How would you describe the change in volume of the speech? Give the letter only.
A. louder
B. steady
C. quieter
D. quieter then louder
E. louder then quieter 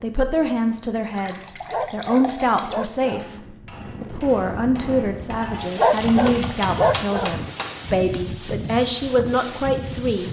B.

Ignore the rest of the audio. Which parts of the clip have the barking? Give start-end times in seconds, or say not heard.
1.6-3.2, 5.8-7.4.